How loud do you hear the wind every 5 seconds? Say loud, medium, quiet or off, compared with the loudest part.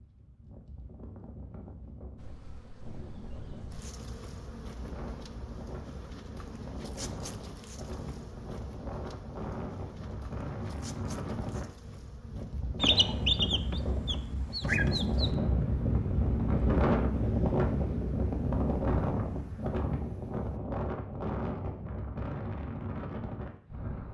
quiet, quiet, medium, loud, medium.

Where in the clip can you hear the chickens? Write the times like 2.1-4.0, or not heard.
12.8-15.3.